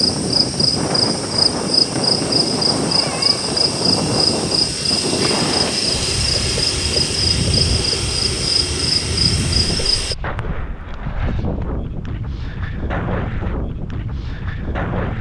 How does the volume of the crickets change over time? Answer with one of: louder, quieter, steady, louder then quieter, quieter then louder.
steady.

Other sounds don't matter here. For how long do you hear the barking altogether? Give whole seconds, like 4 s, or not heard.
not heard.